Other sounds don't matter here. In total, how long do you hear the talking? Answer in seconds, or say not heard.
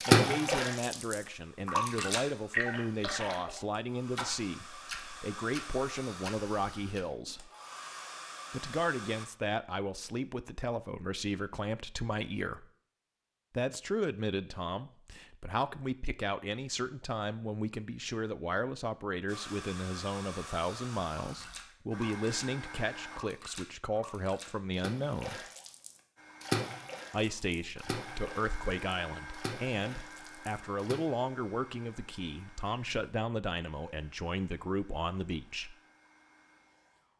32 s.